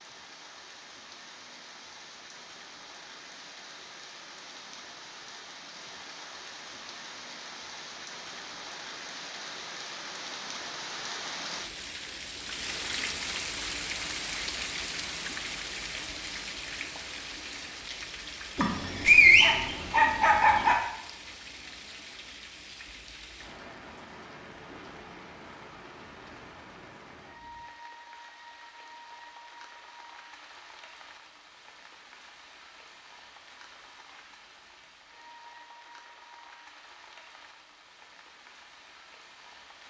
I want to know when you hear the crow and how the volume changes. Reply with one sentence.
The crow can't be heard in this clip.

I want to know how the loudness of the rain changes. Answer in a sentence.
The loudness of the rain goes up, then down.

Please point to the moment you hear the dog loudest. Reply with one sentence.
The volume of the dog peaks at 19 seconds.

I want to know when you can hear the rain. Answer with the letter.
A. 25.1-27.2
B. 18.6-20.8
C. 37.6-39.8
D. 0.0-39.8
D.